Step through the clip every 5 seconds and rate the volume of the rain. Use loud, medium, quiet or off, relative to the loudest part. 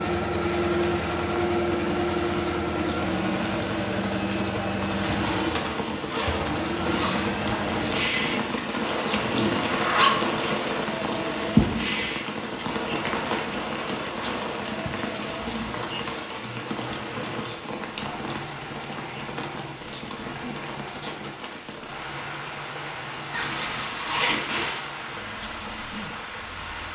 medium, loud, loud, medium, medium, medium.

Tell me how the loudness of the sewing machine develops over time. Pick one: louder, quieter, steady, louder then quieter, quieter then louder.
quieter.